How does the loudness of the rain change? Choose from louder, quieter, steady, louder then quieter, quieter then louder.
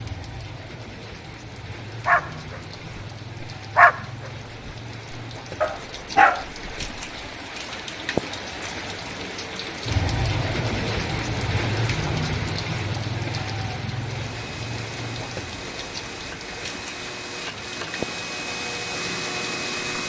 louder then quieter.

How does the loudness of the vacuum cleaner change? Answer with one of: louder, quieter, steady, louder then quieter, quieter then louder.
louder.